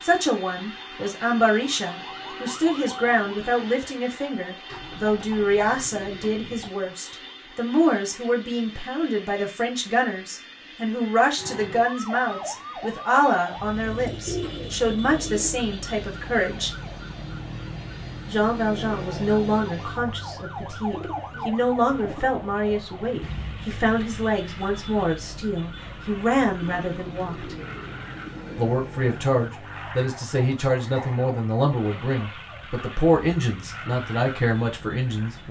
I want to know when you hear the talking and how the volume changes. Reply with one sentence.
The talking can be heard from 0.0 to 16.7 s, at a steady volume; from 18.2 to 27.6 s, at a steady volume; and from 28.6 to 35.4 s, at a steady volume.